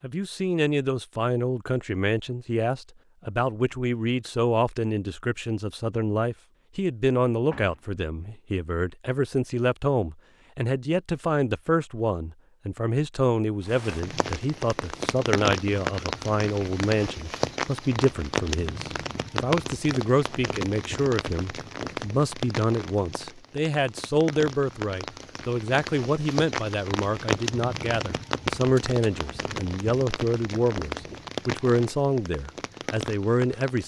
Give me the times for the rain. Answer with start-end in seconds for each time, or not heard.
13.7-33.8.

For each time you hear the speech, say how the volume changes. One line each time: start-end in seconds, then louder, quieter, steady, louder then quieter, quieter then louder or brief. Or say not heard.
0.0-33.8 steady.